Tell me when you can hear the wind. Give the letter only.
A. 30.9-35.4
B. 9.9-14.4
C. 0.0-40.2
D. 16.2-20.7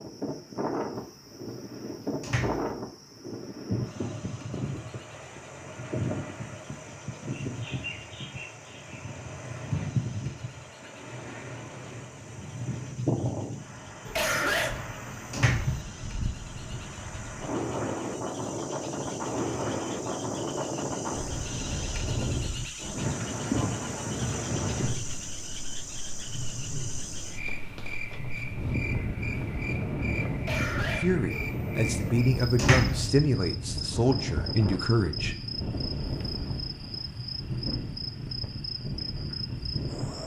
C.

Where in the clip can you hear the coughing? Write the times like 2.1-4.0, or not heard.
14.2-14.8, 30.4-31.2.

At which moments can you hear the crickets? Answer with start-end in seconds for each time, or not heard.
0.0-40.2.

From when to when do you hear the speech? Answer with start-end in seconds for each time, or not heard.
30.9-35.4.